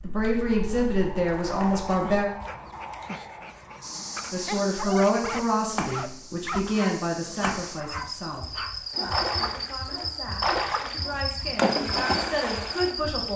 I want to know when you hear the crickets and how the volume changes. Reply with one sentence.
You can hear the crickets from 3.8 to 13.3 s, getting louder.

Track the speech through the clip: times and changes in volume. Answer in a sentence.
The speech can be heard briefly from 0.0 to 2.3 s; and from 4.3 to 13.3 s, getting quieter then louder.